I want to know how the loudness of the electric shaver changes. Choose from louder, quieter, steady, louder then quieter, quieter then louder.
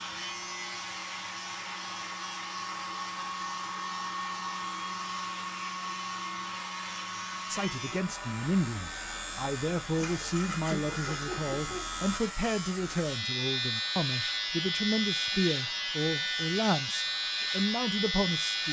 louder.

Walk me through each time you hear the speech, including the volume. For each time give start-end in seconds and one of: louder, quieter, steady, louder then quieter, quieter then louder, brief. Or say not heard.
7.5-18.6 steady.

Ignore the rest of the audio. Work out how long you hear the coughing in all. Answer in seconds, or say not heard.
2 s.